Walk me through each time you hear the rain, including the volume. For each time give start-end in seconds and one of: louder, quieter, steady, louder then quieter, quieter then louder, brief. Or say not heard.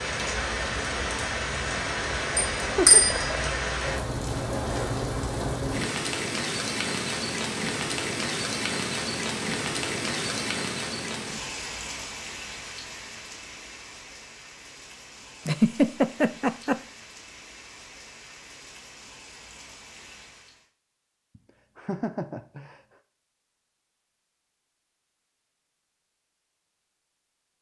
0.0-20.7 quieter.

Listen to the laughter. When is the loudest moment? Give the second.
16 s.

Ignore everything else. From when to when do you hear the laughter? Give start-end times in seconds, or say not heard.
2.6-3.4, 15.4-16.8, 21.4-22.8.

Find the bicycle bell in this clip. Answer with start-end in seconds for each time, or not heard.
2.4-3.3.